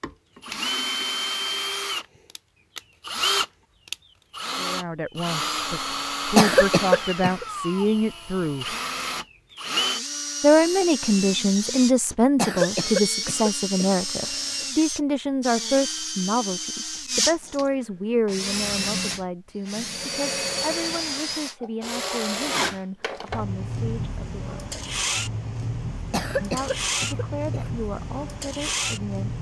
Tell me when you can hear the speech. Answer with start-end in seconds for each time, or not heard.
4.5-8.8, 10.4-24.7, 26.4-29.3.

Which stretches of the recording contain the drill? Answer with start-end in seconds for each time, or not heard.
0.0-29.3.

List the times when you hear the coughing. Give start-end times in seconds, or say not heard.
6.3-7.5, 12.3-14.7, 26.1-27.7.